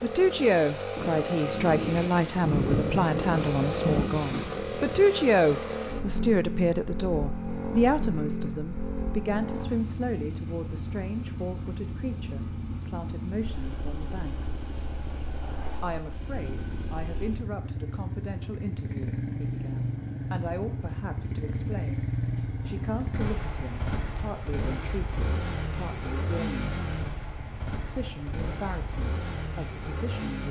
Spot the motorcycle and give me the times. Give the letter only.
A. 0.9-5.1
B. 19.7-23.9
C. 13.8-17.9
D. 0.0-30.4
D.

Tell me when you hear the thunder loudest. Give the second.
3 s.